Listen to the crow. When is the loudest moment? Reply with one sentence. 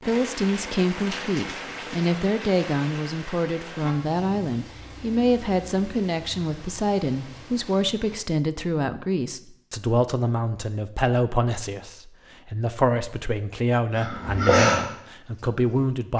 The loudest moment of the crow is at 15 seconds.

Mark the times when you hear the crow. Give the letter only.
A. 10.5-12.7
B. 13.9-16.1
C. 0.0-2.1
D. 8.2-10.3
B.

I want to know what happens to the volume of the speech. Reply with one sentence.
The loudness of the speech stays about the same.